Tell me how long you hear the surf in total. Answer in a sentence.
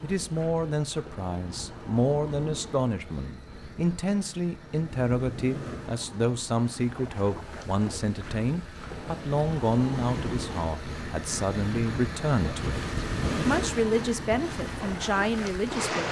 You can hear the surf for 16 seconds altogether.